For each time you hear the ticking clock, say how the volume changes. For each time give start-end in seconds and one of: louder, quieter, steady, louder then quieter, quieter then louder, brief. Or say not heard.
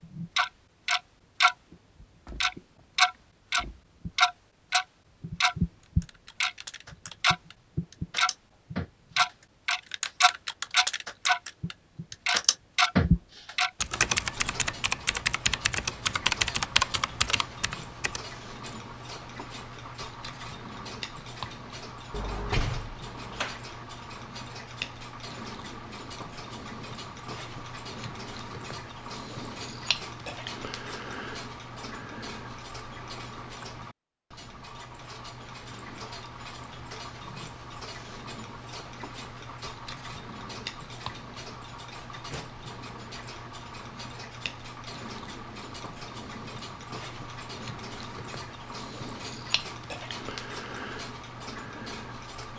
0.0-52.5 quieter.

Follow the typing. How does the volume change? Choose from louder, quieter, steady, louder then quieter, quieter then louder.
louder.